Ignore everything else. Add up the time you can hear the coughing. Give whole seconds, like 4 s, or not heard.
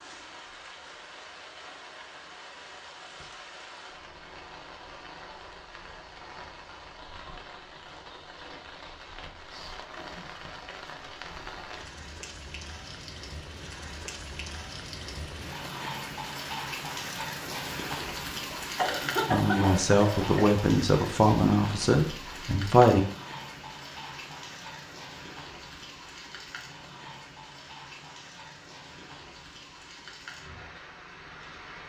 2 s.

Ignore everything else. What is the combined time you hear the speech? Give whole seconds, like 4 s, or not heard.
4 s.